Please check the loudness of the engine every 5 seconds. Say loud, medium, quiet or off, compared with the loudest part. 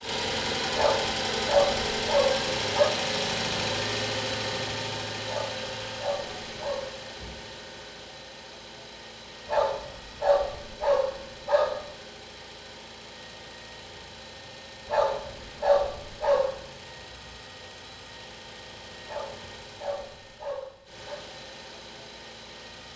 loud, medium, quiet, quiet, quiet.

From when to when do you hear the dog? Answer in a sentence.
The dog can be heard from 0.8 to 3.0 s, from 5.2 to 7.0 s, from 9.4 to 11.8 s, from 14.8 to 16.6 s and from 19.1 to 21.2 s.